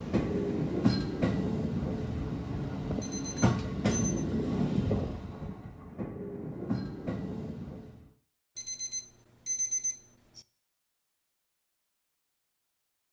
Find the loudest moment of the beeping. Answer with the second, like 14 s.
10 s.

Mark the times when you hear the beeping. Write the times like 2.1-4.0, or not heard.
3.0-4.0, 8.6-10.4.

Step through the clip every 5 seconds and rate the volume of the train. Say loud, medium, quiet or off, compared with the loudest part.
loud, medium, off.